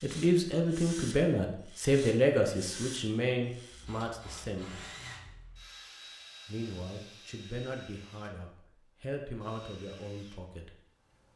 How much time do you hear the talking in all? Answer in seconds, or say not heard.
9 s.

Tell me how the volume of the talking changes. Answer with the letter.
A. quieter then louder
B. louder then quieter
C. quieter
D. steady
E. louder
C.